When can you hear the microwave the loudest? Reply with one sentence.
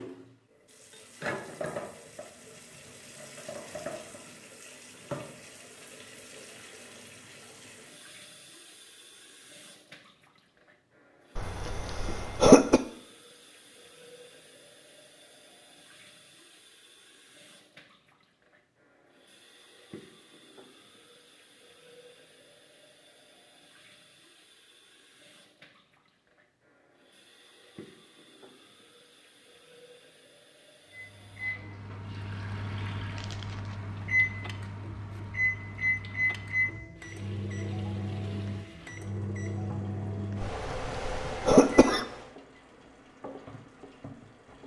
The volume of the microwave peaks at 36 seconds.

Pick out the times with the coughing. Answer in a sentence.
The coughing can be heard from 11.3 to 12.8 s and from 40.4 to 42.0 s.